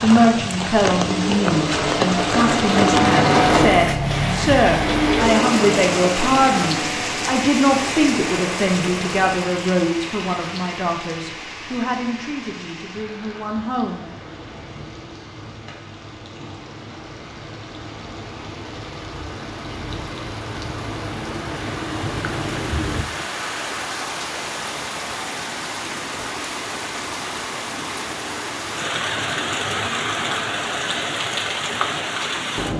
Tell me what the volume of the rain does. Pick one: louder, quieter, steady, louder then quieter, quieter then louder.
quieter then louder.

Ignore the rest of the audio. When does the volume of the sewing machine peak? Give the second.
3 s.